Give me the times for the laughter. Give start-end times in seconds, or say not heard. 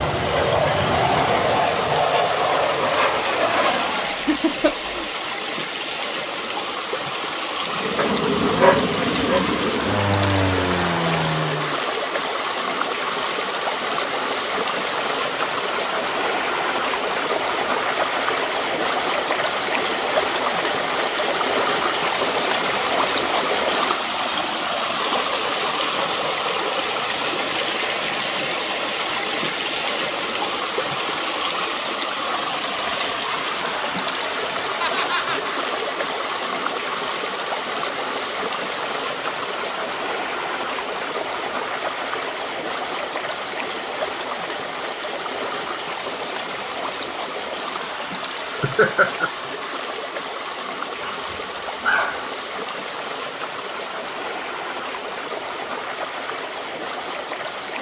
4.0-5.0, 34.8-35.5, 48.5-49.3.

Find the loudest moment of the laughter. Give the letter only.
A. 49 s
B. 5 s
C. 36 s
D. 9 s
A.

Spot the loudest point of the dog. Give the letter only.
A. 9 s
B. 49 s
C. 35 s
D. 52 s
A.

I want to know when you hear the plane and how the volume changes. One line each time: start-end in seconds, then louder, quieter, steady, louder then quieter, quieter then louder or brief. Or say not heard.
0.0-4.2 steady
7.6-11.8 steady.